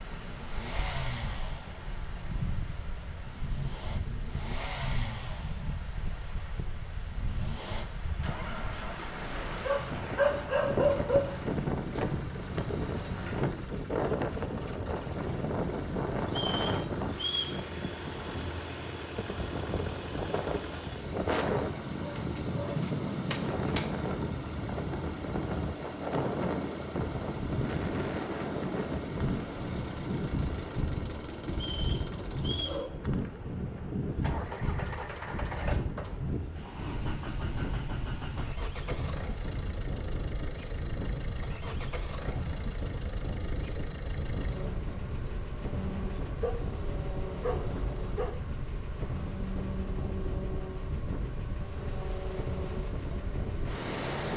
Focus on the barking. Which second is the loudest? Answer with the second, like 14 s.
11 s.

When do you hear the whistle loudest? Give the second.
17 s.